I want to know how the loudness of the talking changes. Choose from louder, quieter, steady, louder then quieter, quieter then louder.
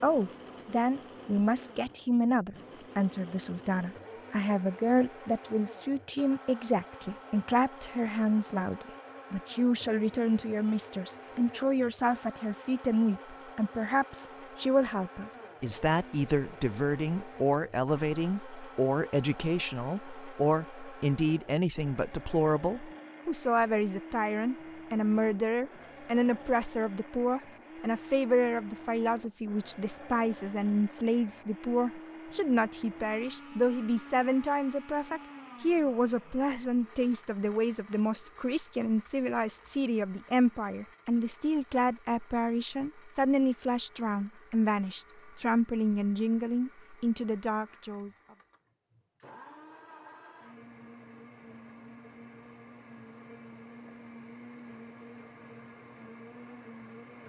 steady.